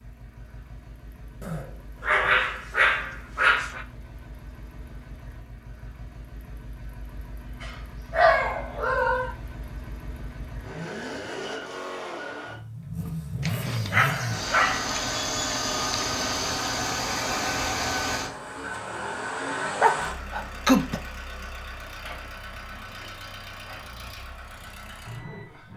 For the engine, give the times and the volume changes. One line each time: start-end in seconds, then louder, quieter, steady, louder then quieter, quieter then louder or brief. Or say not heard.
0.0-25.7 louder then quieter.